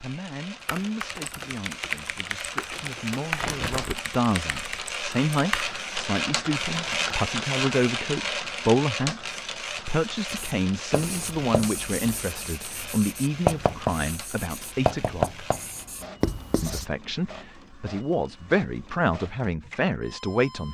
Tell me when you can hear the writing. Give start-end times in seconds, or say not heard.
10.2-16.9.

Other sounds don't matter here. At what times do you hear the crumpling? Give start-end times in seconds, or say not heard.
2.7-4.0.